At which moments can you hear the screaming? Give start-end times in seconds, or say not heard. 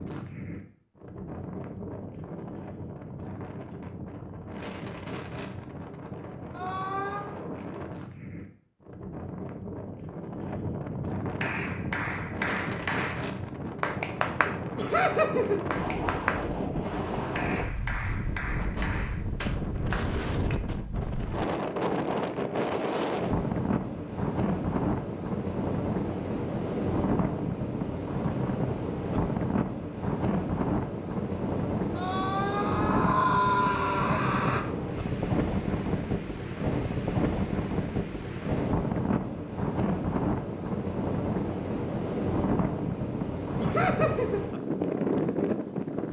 6.5-7.2, 31.9-34.6.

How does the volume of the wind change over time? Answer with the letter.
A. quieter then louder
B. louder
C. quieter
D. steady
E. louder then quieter
B.